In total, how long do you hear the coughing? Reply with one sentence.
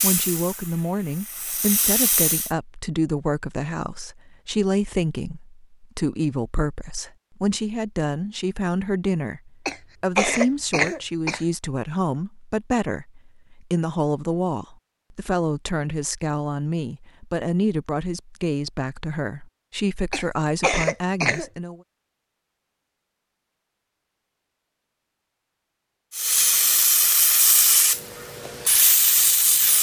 You can hear the coughing for 3 seconds altogether.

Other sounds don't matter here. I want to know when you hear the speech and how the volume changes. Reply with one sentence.
The speech can be heard from 0.0 to 21.8 s, at a steady volume.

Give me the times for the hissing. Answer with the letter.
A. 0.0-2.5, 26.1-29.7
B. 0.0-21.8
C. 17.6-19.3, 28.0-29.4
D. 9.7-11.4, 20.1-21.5
A.